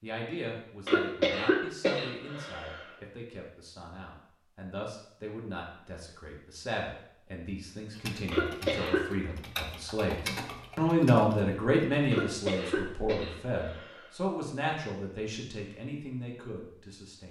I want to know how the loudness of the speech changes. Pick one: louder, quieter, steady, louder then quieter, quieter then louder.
louder then quieter.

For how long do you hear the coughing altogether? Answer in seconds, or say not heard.
5 s.